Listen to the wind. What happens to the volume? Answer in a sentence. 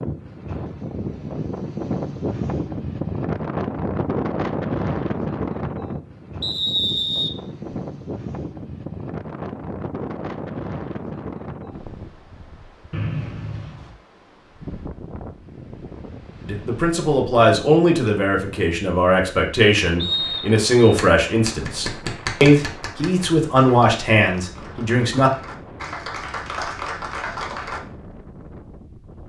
The volume of the wind goes down.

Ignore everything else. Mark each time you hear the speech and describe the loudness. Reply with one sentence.
The speech can be heard from 16.4 to 25.3 s, at a steady volume.